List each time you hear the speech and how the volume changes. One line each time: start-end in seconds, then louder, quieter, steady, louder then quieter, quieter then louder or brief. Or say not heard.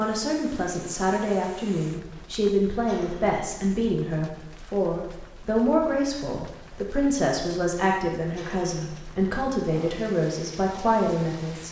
0.0-11.6 steady.